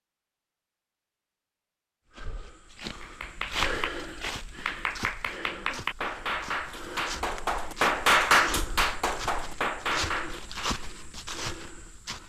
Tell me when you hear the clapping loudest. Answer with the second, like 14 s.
8 s.